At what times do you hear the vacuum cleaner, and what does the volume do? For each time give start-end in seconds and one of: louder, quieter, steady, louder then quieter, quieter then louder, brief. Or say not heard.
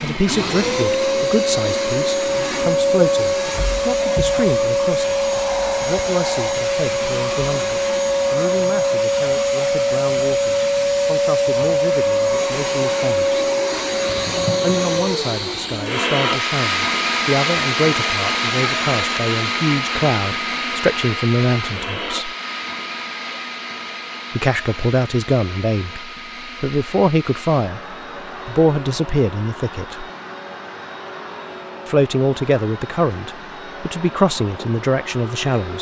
0.0-35.7 quieter.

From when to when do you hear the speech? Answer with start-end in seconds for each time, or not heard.
0.0-13.3, 14.6-22.3, 24.4-30.1, 31.9-35.7.